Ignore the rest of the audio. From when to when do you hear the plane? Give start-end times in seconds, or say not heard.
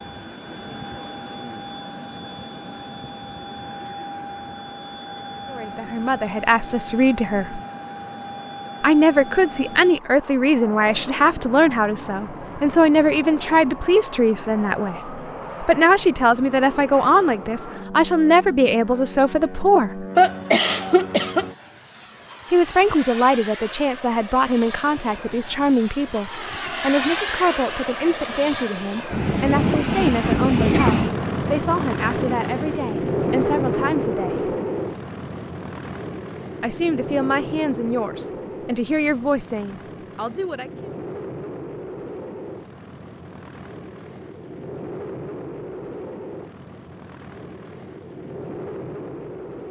0.0-49.6.